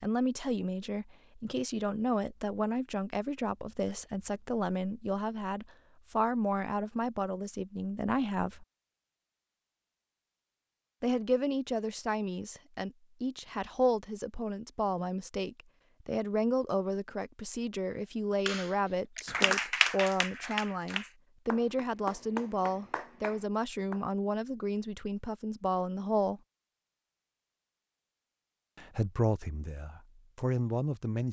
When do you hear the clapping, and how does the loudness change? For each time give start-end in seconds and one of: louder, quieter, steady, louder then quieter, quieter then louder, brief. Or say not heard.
18.4-24.0 quieter.